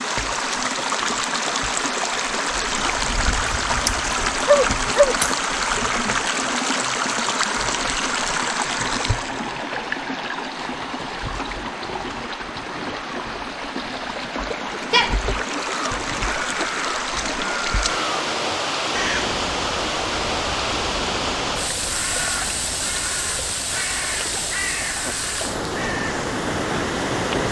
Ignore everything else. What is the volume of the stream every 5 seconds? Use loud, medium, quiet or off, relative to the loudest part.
loud, loud, medium, loud, loud, loud.